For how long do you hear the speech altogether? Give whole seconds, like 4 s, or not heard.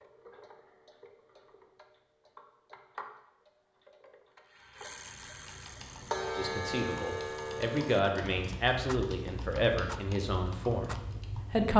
5 s.